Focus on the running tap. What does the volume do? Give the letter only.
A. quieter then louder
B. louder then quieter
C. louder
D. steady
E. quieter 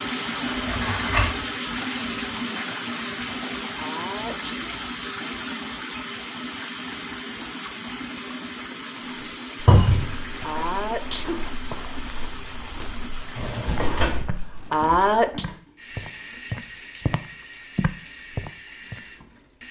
E.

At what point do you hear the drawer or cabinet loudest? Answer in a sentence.
The volume of the drawer or cabinet peaks at 10 seconds.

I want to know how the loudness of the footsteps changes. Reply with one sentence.
The loudness of the footsteps goes up.